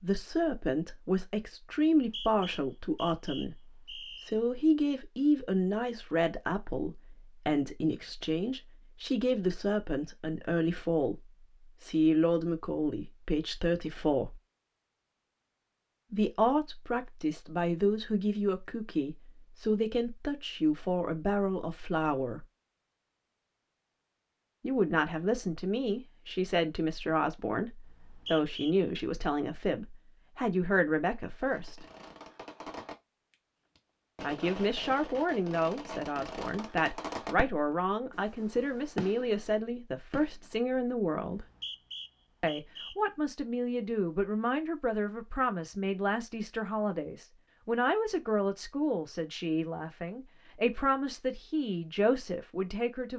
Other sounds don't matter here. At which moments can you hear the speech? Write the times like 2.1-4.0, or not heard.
0.0-11.2, 11.8-14.4, 16.1-22.4, 24.6-31.9, 34.2-41.5, 42.4-53.1.